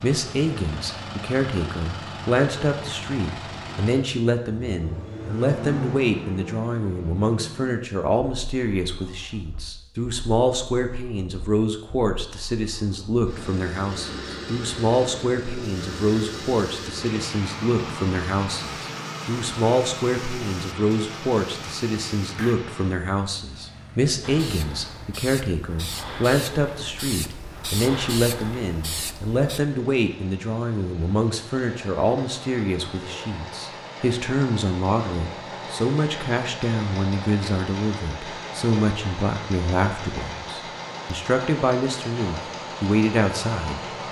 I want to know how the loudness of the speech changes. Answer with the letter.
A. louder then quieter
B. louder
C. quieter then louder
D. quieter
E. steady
E.